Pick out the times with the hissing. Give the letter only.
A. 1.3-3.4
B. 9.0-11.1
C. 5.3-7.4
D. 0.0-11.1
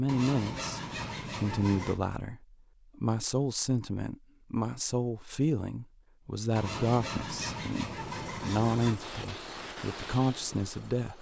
B.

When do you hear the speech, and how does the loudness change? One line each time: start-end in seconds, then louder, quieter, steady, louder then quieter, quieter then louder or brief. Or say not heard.
0.0-11.1 steady.